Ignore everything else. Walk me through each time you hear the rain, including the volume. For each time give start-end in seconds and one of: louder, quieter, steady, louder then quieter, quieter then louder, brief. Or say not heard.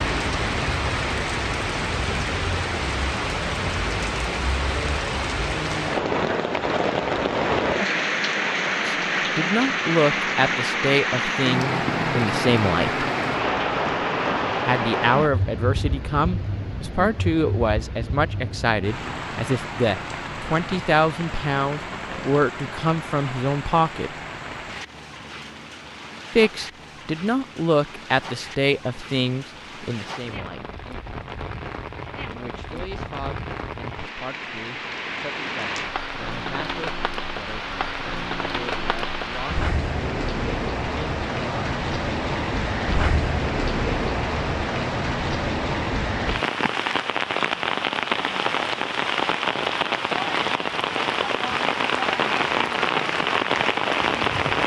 0.0-54.6 quieter then louder.